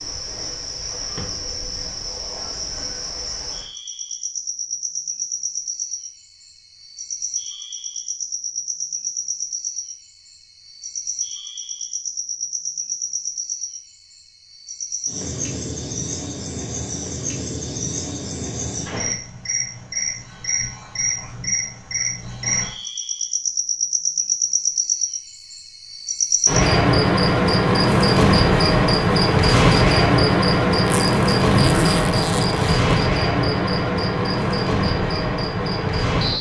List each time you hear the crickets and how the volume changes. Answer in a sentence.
You can hear the crickets from 0.0 to 36.3 s, getting louder.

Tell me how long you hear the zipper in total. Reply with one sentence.
The zipper can be heard for 2 seconds in total.